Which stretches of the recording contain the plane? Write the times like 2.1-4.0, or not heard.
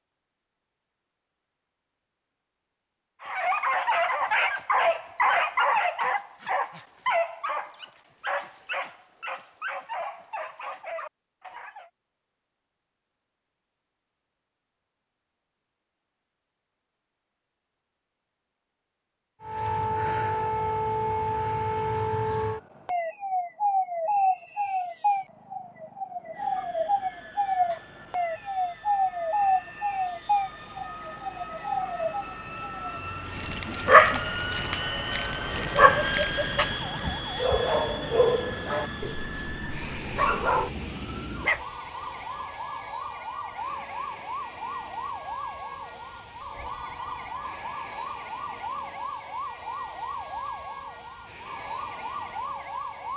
26.3-53.1.